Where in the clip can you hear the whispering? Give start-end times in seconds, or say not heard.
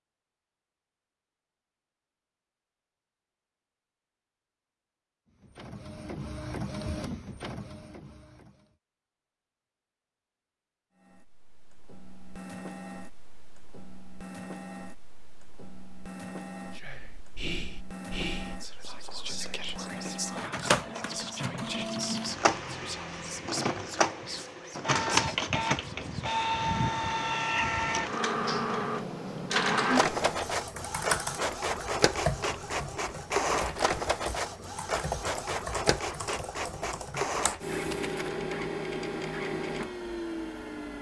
16.8-26.2.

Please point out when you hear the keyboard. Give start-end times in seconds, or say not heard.
28.3-37.6.